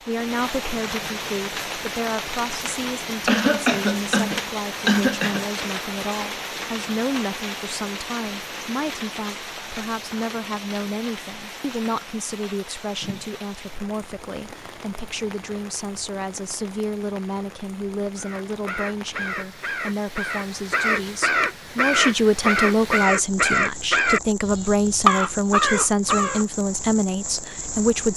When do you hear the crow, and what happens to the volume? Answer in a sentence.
The crow can be heard from 18.1 to 26.4 s, getting louder.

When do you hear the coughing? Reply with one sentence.
The coughing can be heard from 3.2 to 5.5 s.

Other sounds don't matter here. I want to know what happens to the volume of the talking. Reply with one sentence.
The loudness of the talking goes up.